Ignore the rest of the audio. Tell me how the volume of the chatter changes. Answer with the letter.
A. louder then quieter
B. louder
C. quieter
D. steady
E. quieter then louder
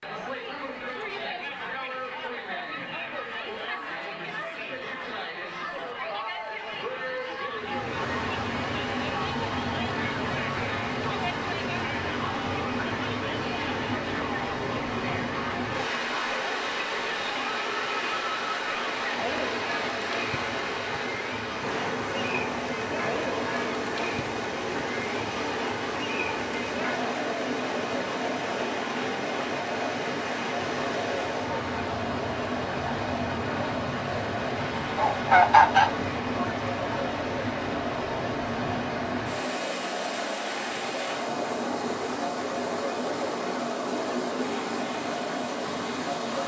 D.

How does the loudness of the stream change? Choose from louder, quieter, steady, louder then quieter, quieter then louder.
steady.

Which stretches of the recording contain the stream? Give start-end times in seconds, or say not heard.
7.5-46.4.